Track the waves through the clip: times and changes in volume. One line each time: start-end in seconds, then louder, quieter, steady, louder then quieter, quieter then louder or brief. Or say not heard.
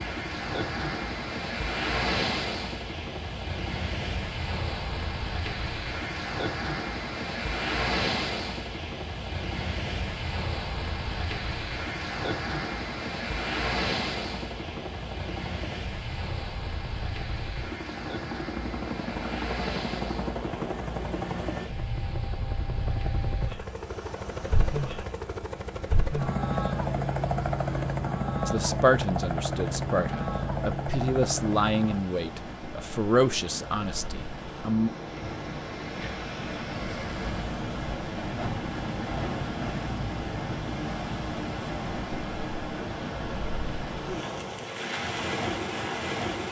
0.0-46.4 quieter then louder.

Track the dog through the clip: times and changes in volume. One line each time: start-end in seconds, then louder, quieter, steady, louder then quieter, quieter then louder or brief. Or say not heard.
not heard.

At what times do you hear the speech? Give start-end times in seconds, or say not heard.
28.4-34.9.